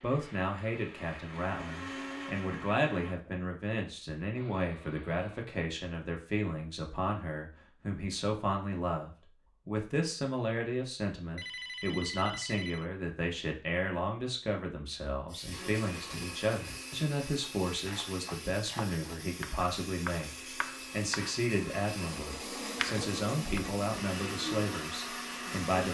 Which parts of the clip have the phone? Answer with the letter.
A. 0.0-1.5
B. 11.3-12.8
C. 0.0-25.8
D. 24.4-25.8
B.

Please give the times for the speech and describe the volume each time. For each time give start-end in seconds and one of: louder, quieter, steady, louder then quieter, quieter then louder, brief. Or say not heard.
0.0-25.8 steady.